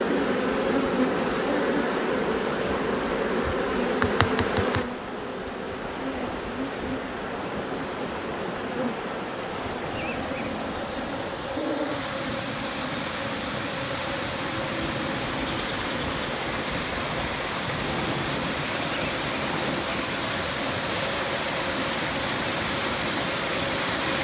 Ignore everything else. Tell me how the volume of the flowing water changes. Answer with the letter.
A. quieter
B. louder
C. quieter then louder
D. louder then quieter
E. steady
B.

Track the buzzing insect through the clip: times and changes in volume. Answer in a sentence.
You can hear the buzzing insect from 0.0 to 24.1 s, getting quieter.